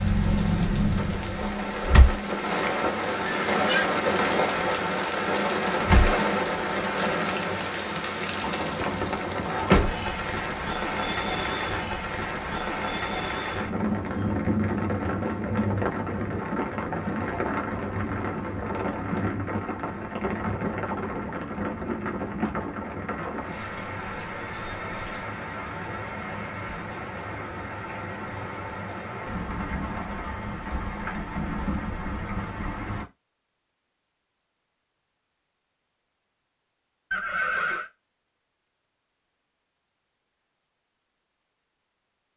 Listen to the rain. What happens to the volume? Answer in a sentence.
The loudness of the rain goes down.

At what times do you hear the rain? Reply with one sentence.
The rain can be heard from 0.0 to 33.0 s.